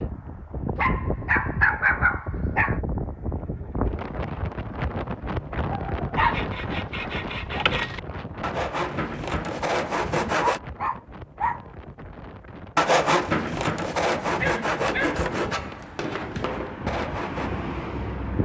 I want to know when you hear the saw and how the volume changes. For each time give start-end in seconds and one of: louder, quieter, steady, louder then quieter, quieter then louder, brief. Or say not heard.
6.3-10.6 louder
12.8-17.6 quieter.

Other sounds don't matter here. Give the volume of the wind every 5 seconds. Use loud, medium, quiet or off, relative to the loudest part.
loud, loud, medium, loud.